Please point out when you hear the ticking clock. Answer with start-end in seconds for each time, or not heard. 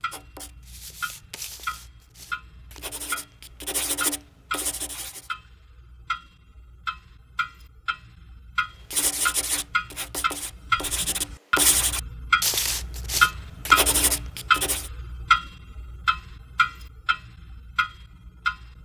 0.0-18.8.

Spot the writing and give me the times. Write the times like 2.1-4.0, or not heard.
0.0-5.3, 8.9-14.9.